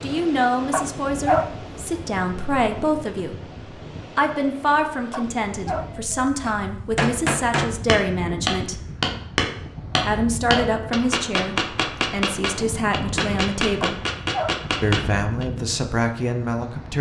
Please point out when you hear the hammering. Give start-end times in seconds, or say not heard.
6.4-15.4.